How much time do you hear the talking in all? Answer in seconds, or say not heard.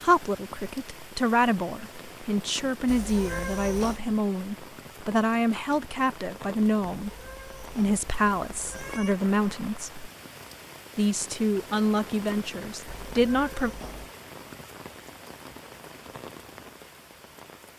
13 s.